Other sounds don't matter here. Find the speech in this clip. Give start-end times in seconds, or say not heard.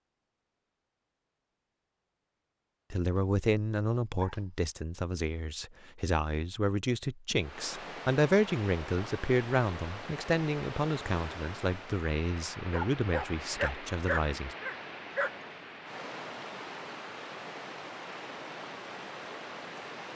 2.9-14.6.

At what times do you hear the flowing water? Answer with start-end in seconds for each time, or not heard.
7.3-20.1.